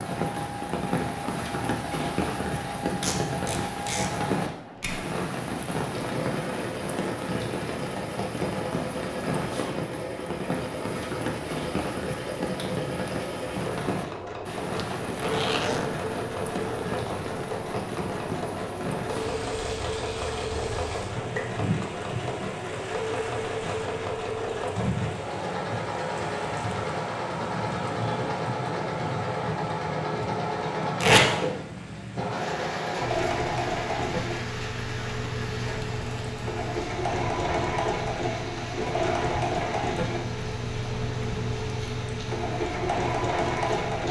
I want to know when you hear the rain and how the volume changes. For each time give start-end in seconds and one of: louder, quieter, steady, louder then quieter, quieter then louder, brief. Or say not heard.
0.0-44.0 quieter.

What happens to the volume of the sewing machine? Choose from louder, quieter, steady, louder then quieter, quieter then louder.
louder.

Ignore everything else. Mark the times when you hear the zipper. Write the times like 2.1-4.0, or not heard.
14.7-15.9.